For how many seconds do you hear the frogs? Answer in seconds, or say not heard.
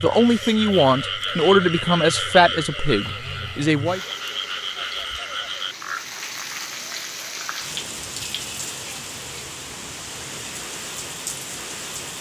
6 s.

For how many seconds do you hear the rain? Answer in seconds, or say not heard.
12 s.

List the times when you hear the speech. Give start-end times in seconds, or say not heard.
0.0-4.0.